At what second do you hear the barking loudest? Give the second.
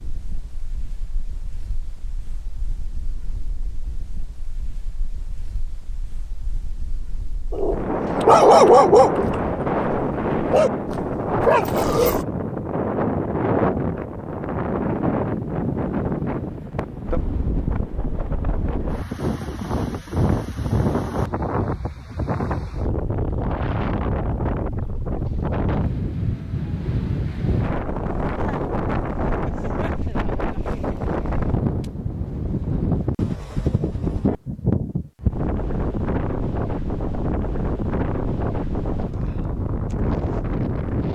9 s.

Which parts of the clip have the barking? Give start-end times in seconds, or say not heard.
7.5-12.2.